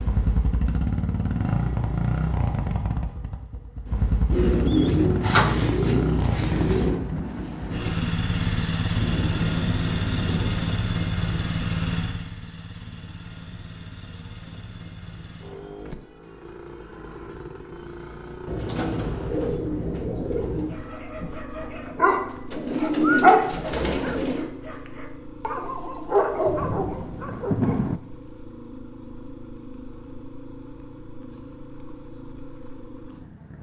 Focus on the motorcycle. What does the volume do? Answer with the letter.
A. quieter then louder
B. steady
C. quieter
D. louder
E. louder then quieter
C.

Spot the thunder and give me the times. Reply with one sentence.
You can hear the thunder from 6.8 to 10.7 s and from 26.4 to 28.0 s.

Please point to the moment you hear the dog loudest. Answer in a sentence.
The volume of the dog peaks at 23 seconds.